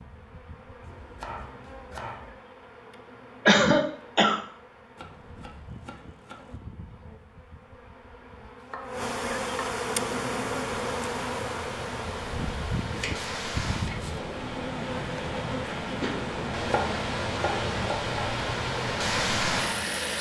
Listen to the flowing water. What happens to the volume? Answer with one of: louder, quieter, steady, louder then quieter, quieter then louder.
louder.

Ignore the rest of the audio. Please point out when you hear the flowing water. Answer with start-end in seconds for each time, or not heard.
10.2-20.1.